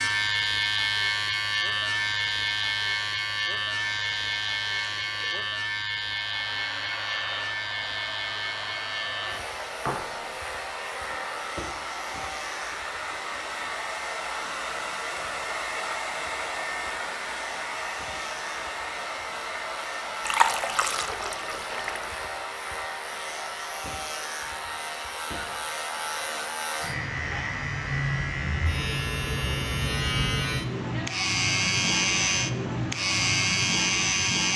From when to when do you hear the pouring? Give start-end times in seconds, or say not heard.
4.9-5.4, 20.2-22.2.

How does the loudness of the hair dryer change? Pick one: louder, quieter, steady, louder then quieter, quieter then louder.
louder then quieter.